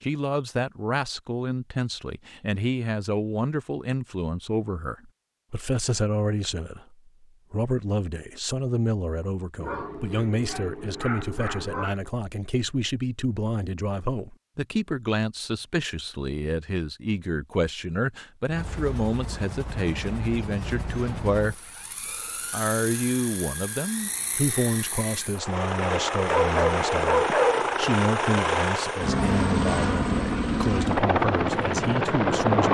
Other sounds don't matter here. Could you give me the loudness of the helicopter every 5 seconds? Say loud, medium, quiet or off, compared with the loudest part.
off, off, off, quiet, quiet, loud, loud.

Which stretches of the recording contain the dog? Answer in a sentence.
The dog can be heard from 9.6 to 11.9 s and from 26.1 to 27.6 s.